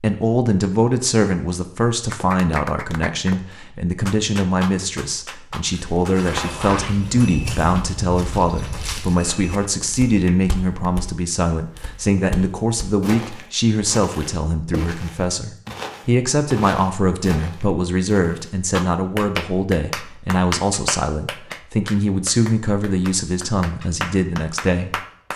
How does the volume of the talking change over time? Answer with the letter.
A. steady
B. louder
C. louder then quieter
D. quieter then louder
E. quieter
A.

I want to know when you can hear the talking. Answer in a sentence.
You can hear the talking from 0.0 to 25.0 s.